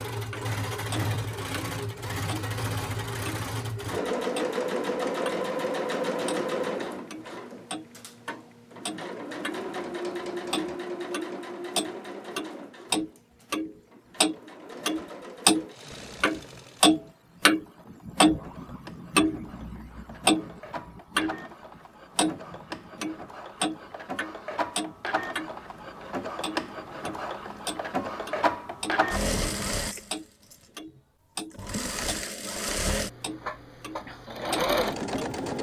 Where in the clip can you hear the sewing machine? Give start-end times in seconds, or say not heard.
0.0-30.6, 31.5-35.5.